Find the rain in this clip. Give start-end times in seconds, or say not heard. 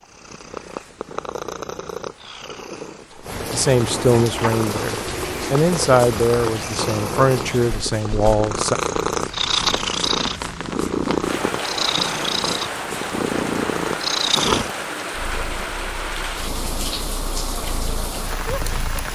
3.2-19.1.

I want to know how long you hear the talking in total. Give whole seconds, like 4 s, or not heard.
5 s.